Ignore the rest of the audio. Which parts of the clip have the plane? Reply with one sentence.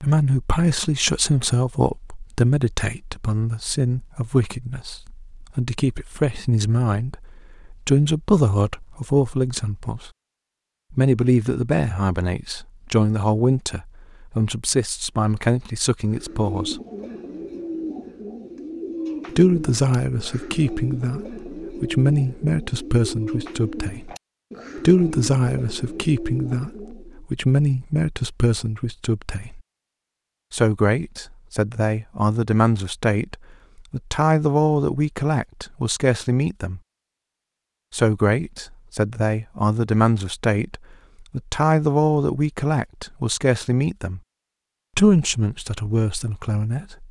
You can't hear the plane here.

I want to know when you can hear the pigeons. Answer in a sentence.
The pigeons can be heard from 16.1 to 27.2 s.